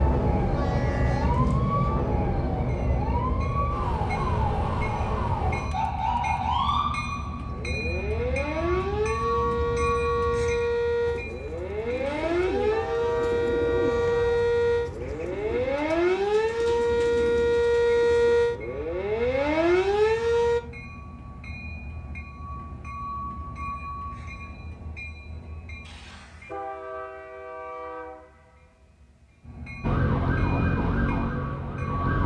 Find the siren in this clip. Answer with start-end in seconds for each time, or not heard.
0.0-20.6, 29.8-32.2.